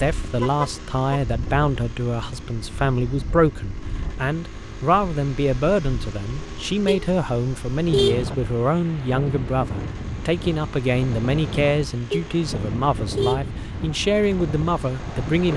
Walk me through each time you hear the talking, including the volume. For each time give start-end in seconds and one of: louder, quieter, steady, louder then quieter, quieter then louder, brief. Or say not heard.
0.0-15.5 steady.